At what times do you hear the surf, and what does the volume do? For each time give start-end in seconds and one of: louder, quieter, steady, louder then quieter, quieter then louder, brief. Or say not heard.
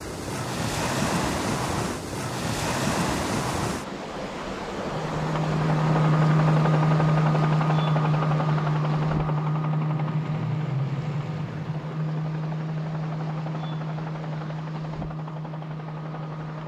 0.0-16.6 quieter.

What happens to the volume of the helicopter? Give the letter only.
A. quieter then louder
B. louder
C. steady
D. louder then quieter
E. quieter
E.